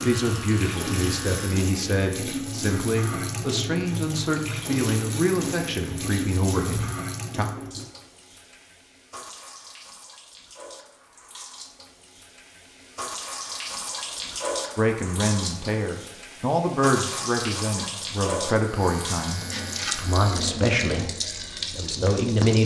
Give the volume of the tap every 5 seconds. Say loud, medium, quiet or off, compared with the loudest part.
loud, loud, medium, loud, loud.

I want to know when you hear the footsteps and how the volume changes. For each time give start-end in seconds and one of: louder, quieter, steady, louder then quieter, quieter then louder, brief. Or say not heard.
not heard.